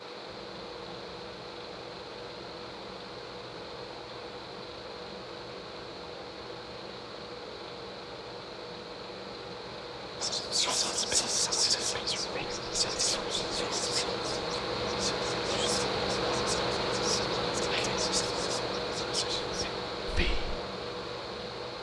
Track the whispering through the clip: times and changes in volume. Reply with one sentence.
You can hear the whispering from 10.2 to 20.6 s, getting quieter.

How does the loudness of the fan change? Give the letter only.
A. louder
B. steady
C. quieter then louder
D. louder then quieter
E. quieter
A.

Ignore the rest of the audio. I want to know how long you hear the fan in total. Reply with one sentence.
You can hear the fan for 22 seconds altogether.